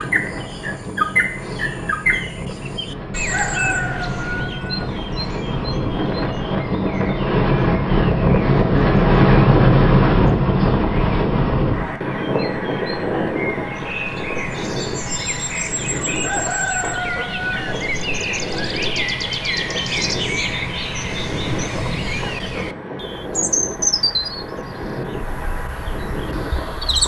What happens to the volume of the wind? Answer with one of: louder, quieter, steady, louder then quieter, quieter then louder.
louder then quieter.